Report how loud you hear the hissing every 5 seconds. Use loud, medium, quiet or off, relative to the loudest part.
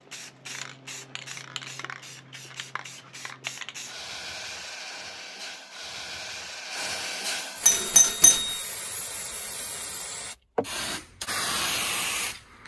medium, medium, loud.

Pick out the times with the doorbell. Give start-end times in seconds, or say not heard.
7.6-8.6.